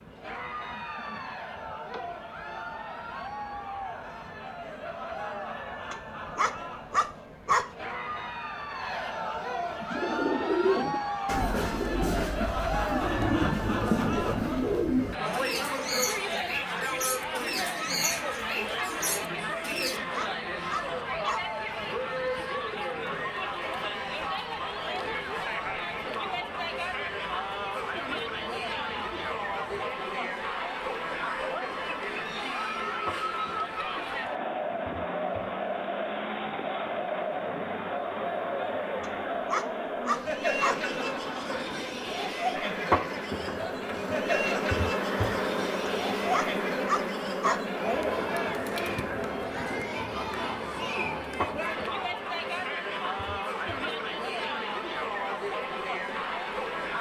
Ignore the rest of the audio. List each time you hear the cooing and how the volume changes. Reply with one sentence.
The cooing can be heard from 9.8 to 20.0 s, getting quieter.